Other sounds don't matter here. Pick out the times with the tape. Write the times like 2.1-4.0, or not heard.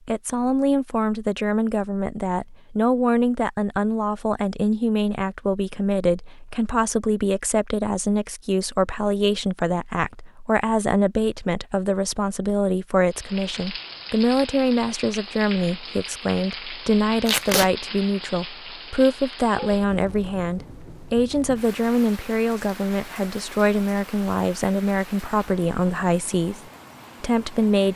17.2-17.7.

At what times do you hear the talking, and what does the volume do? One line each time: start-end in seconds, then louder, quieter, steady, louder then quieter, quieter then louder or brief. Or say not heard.
0.1-26.6 steady
27.2-27.9 brief.